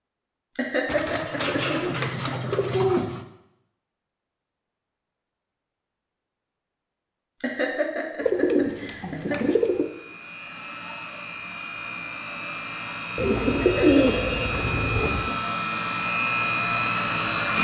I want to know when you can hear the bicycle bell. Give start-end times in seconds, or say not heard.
not heard.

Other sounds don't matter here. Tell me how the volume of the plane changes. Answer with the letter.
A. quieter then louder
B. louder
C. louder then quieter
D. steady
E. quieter
B.